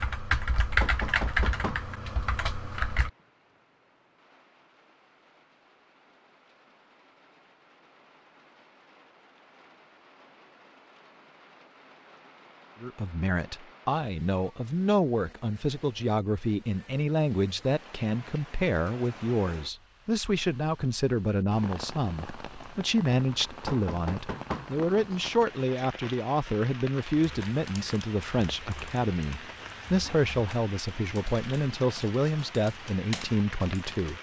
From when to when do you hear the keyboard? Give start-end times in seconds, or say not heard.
0.0-3.1, 27.1-34.1.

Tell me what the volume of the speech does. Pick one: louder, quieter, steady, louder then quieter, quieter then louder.
steady.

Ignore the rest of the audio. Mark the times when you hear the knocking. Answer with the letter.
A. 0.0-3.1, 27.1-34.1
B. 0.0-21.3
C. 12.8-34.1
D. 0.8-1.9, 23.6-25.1
D.